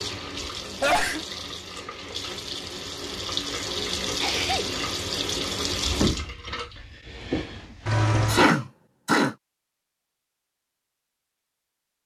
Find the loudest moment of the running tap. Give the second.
6 s.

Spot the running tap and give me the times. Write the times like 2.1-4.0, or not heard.
0.0-8.5.